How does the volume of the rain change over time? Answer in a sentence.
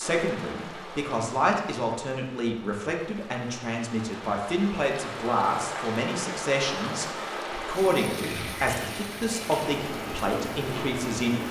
The volume of the rain goes up.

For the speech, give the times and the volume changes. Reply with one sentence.
The speech can be heard from 0.0 to 11.4 s, at a steady volume.